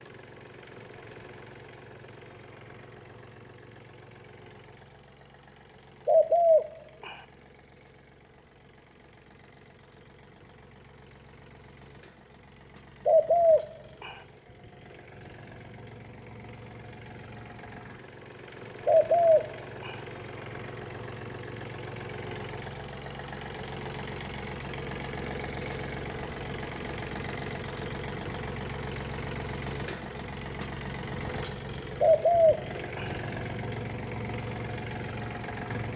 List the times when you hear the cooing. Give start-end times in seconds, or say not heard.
6.0-7.2, 13.1-14.2, 18.9-19.9, 32.0-33.1.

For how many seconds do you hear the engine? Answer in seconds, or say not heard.
36 s.